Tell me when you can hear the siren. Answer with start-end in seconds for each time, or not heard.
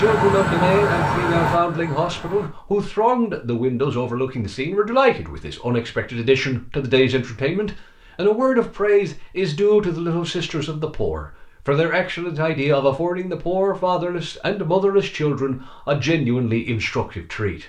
0.0-2.5.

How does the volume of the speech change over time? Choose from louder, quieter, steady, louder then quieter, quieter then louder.
steady.